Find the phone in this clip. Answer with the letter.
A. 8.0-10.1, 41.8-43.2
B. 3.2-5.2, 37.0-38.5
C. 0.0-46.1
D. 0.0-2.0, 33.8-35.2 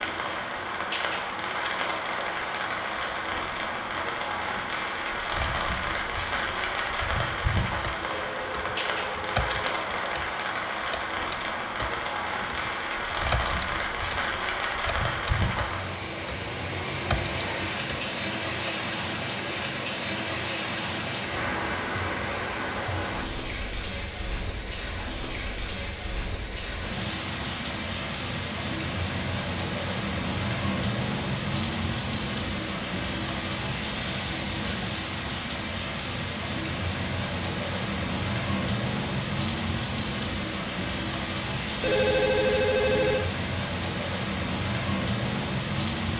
A.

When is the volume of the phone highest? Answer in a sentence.
The volume of the phone peaks at 42 seconds.